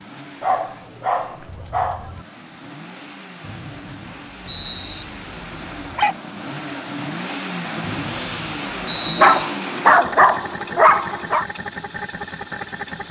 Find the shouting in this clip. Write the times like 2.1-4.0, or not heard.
not heard.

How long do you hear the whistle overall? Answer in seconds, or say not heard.
3 s.